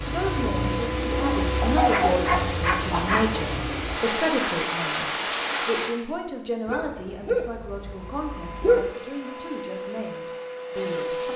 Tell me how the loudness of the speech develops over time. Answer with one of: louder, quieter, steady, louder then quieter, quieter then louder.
quieter.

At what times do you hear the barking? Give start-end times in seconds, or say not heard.
1.6-3.5, 6.7-8.9.